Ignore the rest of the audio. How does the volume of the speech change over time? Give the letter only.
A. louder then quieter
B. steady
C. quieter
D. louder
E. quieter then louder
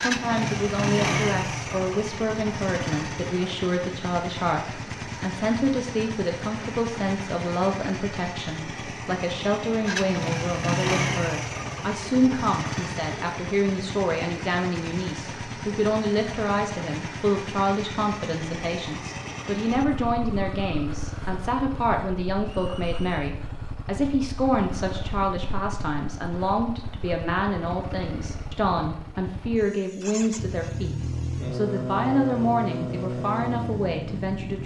B.